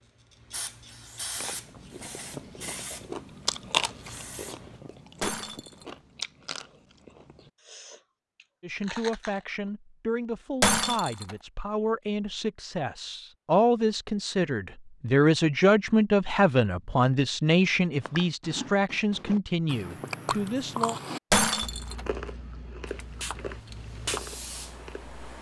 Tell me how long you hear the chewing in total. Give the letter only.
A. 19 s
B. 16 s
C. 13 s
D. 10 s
B.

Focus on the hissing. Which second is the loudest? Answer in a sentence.
The loudest moment of the hissing is at 25 seconds.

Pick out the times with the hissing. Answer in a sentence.
The hissing can be heard from 0.0 to 4.8 s and from 22.9 to 25.3 s.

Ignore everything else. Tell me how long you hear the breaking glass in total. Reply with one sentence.
You can hear the breaking glass for 2 seconds altogether.